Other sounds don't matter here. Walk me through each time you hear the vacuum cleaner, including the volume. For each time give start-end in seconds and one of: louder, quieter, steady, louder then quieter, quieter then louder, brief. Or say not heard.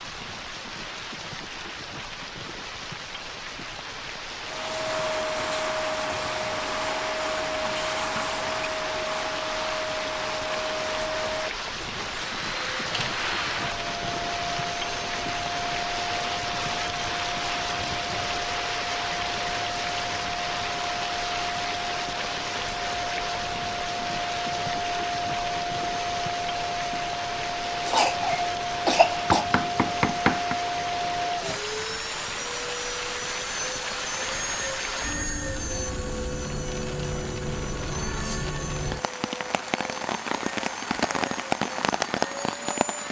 4.4-43.0 quieter.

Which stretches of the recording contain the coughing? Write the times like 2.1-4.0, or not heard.
27.9-29.4.